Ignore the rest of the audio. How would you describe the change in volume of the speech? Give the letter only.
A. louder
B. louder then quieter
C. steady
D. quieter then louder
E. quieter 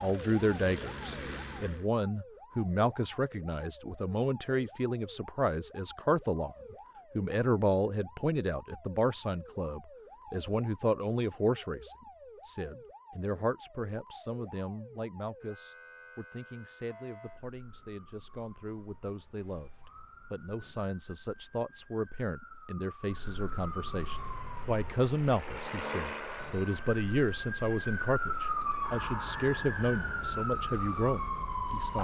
D.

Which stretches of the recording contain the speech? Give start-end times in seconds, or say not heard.
0.0-31.9.